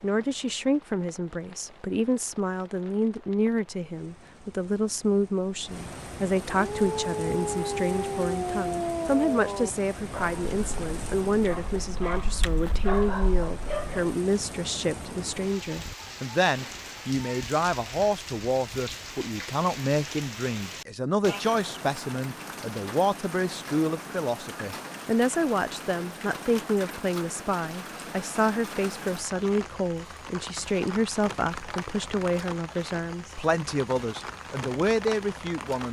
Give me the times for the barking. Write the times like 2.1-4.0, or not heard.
6.5-14.1.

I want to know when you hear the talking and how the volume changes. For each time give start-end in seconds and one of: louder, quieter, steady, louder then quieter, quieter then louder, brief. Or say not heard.
0.0-35.8 steady.